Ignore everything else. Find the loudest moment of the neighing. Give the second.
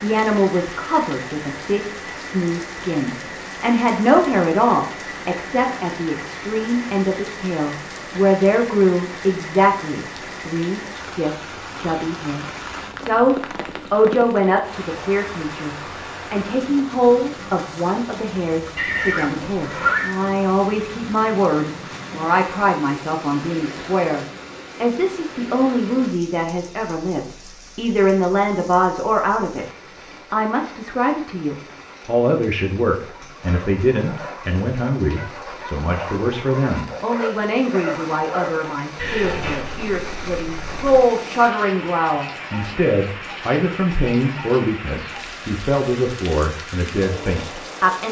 20 s.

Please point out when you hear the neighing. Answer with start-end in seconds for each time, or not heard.
18.8-20.1, 39.0-41.0.